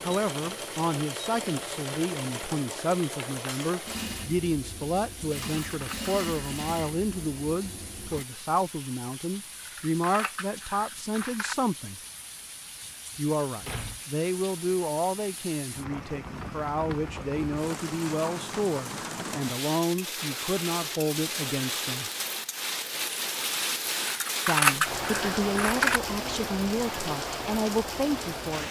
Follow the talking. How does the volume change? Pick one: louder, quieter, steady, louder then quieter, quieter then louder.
steady.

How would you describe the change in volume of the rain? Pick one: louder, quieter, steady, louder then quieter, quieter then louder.
louder.